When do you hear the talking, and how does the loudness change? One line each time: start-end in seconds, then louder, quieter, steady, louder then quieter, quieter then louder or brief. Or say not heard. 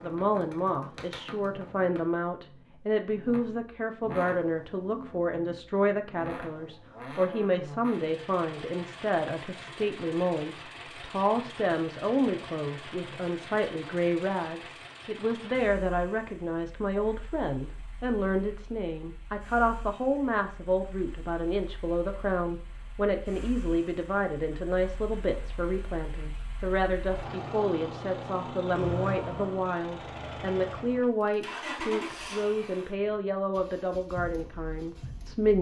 0.0-35.5 steady.